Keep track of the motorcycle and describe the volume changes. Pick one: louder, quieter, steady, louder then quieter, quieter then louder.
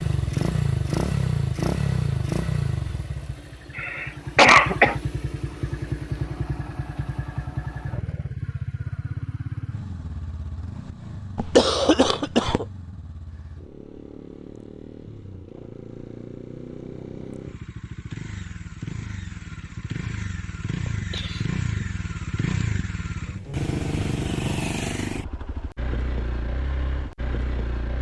quieter then louder.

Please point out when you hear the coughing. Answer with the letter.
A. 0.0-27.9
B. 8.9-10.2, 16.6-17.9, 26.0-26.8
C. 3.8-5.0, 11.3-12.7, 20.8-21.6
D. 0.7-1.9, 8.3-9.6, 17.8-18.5
C.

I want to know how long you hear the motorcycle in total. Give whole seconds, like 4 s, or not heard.
28 s.